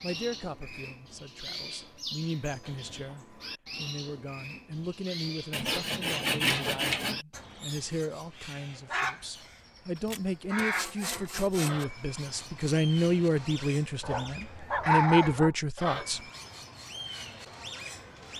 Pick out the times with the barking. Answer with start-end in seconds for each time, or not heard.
14.0-15.5.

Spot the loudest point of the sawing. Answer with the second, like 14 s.
6 s.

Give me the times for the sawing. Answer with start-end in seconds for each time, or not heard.
5.5-7.2, 9.9-11.8.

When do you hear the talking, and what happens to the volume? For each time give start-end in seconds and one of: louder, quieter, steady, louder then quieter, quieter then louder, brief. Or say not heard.
0.0-16.2 louder.